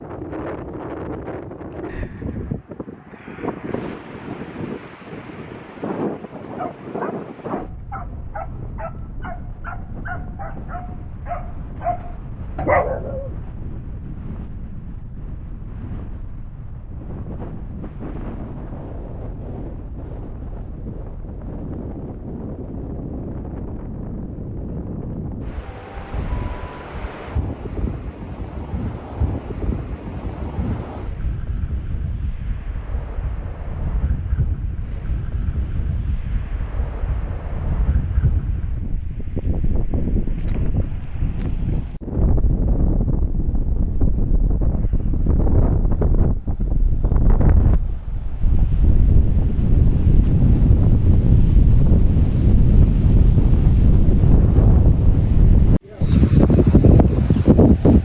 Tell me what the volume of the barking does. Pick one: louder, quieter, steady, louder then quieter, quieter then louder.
louder.